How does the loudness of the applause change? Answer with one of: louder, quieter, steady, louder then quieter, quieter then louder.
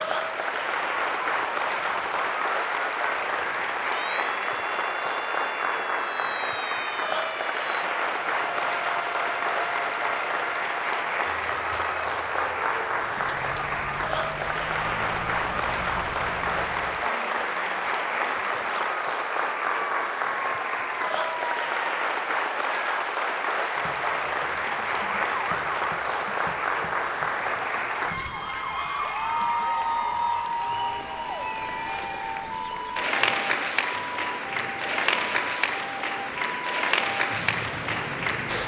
steady.